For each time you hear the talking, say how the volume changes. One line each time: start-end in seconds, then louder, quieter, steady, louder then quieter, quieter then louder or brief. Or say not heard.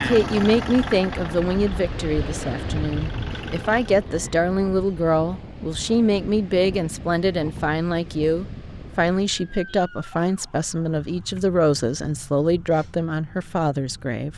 0.0-14.3 steady.